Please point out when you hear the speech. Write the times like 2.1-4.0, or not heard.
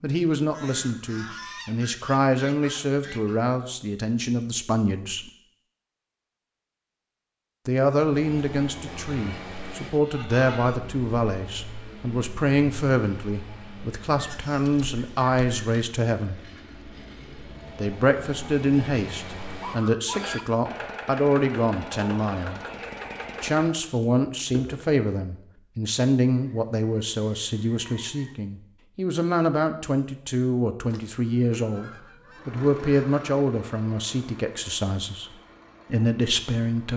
0.0-5.3, 7.7-16.4, 17.8-22.6, 23.4-35.3, 35.9-36.9.